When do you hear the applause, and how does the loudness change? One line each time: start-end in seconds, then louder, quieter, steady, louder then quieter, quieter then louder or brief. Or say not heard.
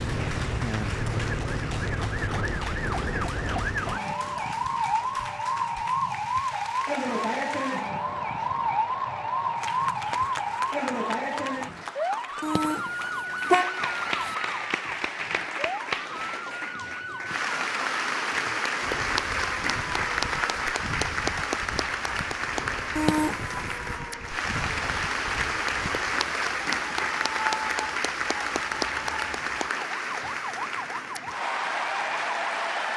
0.0-32.9 louder.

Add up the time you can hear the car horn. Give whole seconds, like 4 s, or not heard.
3 s.